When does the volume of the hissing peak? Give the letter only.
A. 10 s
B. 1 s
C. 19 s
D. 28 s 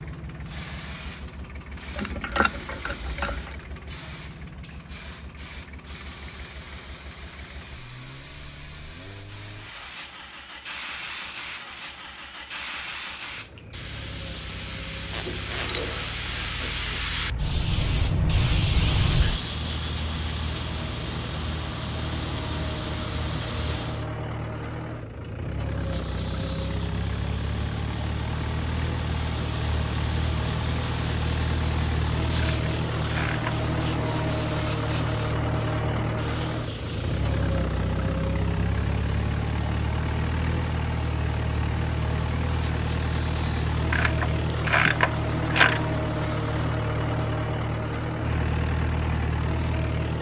C.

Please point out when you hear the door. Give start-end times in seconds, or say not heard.
not heard.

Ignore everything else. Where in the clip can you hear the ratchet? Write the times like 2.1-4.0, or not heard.
1.9-3.5, 15.1-16.9, 32.4-33.5, 43.9-45.8.